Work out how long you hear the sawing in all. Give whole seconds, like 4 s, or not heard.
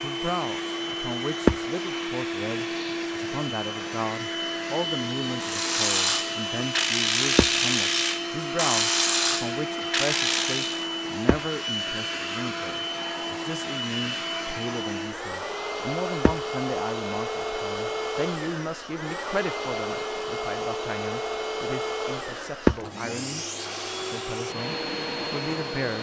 not heard.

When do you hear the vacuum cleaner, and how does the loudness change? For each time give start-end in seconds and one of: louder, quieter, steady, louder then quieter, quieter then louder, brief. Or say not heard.
0.0-25.9 steady.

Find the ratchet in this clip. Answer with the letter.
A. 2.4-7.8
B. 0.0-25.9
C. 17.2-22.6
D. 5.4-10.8
D.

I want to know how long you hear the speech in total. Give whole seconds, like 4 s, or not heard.
26 s.